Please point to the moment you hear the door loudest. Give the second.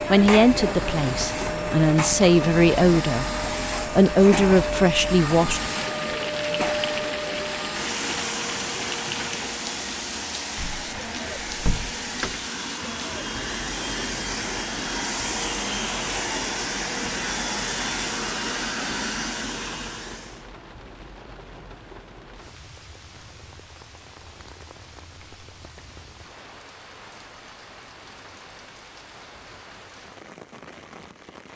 12 s.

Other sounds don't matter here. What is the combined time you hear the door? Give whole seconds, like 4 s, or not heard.
2 s.